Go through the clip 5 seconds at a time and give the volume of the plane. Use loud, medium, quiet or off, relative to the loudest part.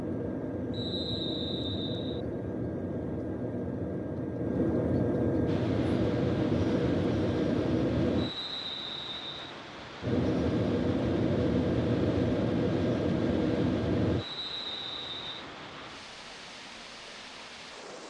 medium, loud, loud, off.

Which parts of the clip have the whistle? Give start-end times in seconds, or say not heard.
0.7-2.2, 8.2-9.6, 14.2-15.4.